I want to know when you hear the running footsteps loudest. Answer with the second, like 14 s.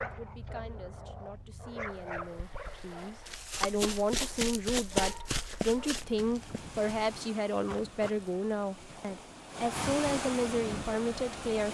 5 s.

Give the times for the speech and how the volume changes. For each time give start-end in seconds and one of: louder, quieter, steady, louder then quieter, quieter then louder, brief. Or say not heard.
0.1-11.7 louder.